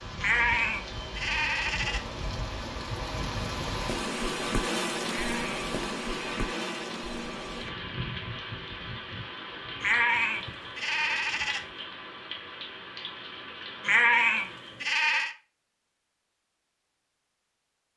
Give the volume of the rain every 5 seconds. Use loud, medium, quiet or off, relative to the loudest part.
loud, loud, medium, off.